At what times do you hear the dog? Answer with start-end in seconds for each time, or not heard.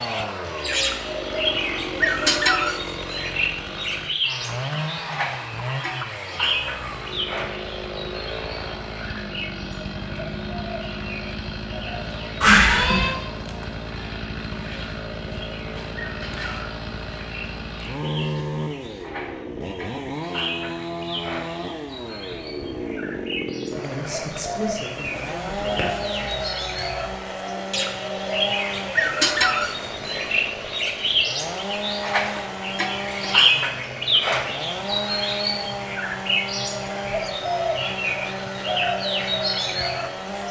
not heard.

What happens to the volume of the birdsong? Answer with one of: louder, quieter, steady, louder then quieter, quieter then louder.
quieter then louder.